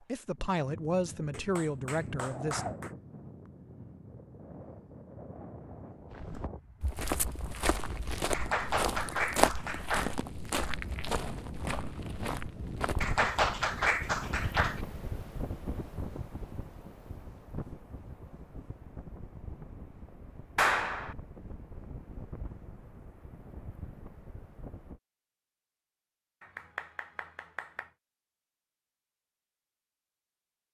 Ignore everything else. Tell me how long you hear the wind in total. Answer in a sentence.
You can hear the wind for 25 seconds altogether.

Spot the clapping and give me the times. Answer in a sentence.
You can hear the clapping from 1.3 to 2.9 s, from 8.3 to 10.2 s, from 13.0 to 14.8 s, from 20.6 to 21.1 s and from 26.4 to 27.9 s.